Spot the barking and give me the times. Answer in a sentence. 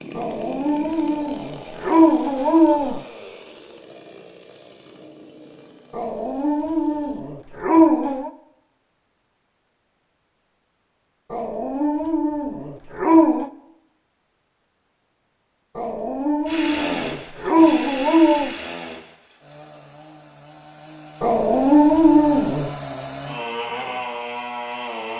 The barking can be heard from 0.1 to 3.0 s, from 6.0 to 8.3 s, from 11.3 to 13.5 s, from 15.8 to 18.6 s and from 21.2 to 22.7 s.